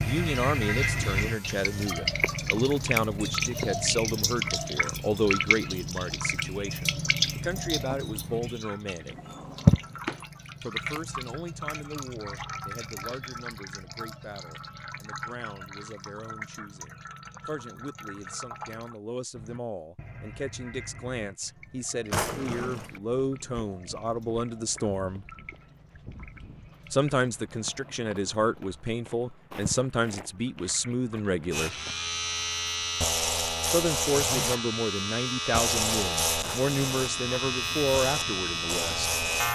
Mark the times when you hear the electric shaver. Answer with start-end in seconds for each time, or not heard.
0.0-1.9, 31.5-39.5.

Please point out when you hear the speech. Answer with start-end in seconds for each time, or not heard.
0.0-9.2, 10.6-25.2, 26.9-31.8, 33.7-39.1.